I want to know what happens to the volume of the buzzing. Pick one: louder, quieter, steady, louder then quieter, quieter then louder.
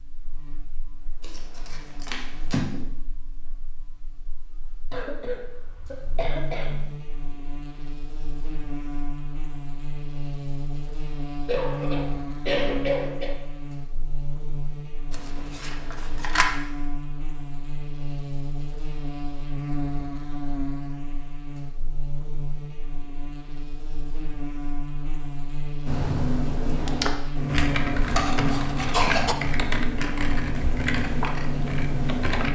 louder.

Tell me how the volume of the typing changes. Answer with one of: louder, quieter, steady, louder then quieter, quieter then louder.
steady.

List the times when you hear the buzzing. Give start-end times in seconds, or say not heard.
0.0-32.5.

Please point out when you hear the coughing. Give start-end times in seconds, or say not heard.
4.9-6.8, 11.4-13.3, 27.5-29.4.